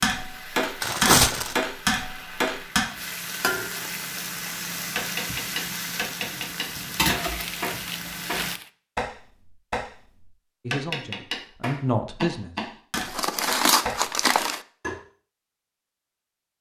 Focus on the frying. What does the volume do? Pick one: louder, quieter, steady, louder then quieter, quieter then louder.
louder.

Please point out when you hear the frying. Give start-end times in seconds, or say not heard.
0.0-8.6.